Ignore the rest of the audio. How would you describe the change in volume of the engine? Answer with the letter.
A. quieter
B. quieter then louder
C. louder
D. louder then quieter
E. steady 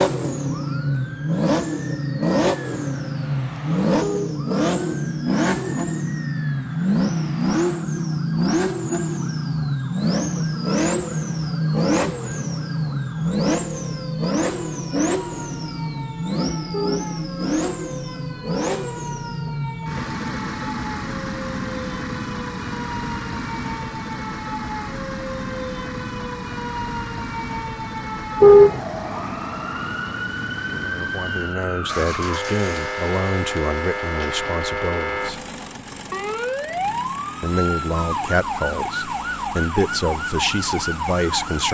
A.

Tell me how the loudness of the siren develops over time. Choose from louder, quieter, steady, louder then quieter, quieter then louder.
louder.